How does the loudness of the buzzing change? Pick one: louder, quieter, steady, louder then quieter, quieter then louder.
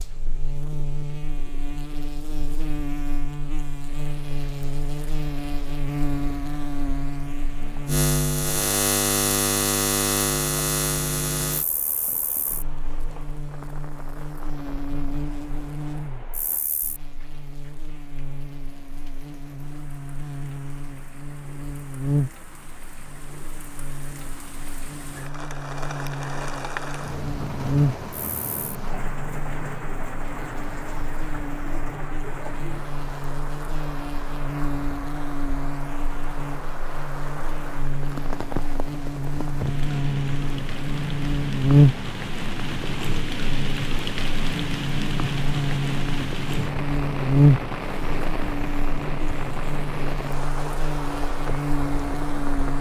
quieter then louder.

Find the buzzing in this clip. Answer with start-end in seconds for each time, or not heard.
0.0-52.7.